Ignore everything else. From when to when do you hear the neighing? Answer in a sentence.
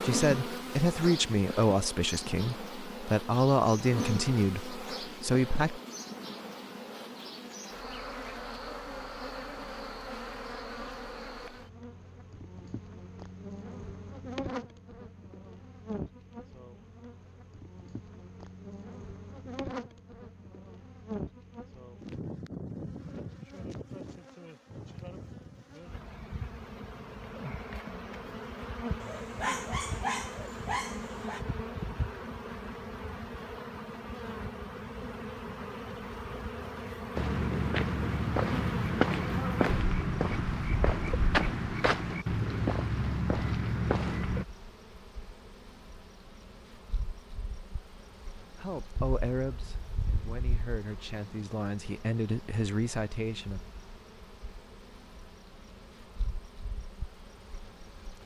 You can't hear the neighing here.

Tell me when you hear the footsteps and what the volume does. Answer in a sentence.
The footsteps can be heard from 37.1 to 44.5 s, at a steady volume.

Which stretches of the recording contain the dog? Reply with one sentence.
You can hear the dog from 29.0 to 31.4 s.